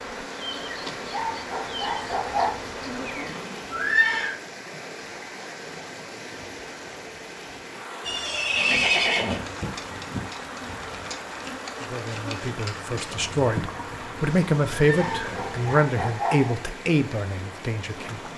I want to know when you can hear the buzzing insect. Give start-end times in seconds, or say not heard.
0.0-3.6, 8.6-15.8.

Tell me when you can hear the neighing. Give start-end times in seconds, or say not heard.
3.7-4.3, 8.1-9.4, 14.8-15.3.